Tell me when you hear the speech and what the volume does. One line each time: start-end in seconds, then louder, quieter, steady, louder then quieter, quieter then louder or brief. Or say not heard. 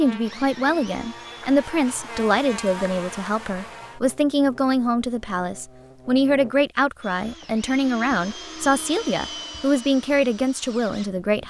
0.0-11.4 steady.